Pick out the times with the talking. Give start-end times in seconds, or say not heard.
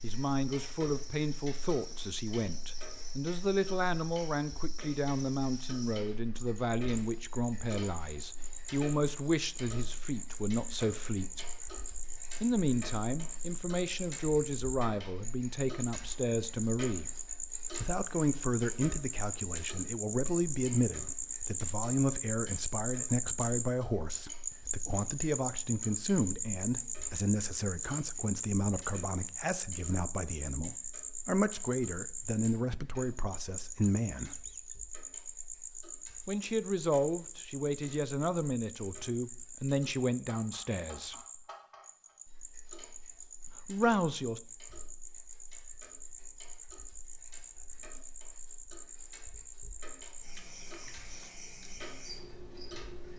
0.0-11.4, 12.4-17.1, 17.8-34.4, 36.2-41.1, 43.6-44.4.